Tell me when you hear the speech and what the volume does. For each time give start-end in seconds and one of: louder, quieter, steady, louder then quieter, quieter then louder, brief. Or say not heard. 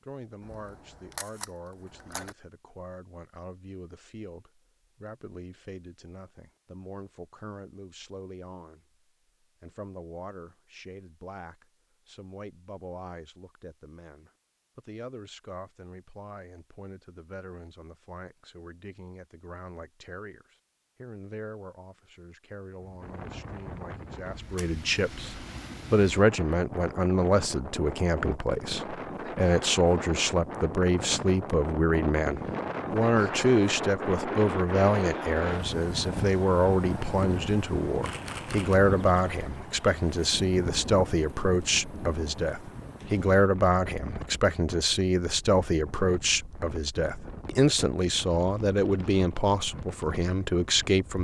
0.0-8.8 steady
9.6-51.1 louder.